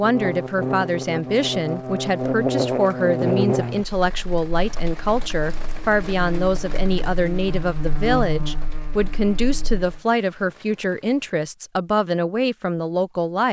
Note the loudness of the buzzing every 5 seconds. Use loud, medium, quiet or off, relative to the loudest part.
loud, medium, off.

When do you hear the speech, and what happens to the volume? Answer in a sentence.
You can hear the speech from 0.0 to 13.4 s, at a steady volume.